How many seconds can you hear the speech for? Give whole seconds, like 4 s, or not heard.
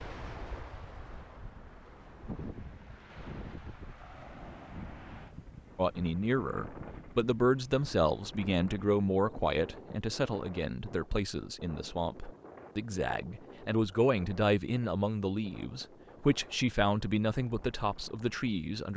13 s.